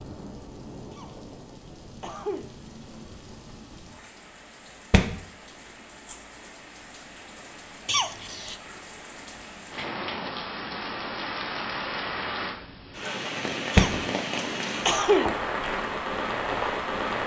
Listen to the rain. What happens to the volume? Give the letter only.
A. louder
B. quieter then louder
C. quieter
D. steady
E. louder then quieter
A.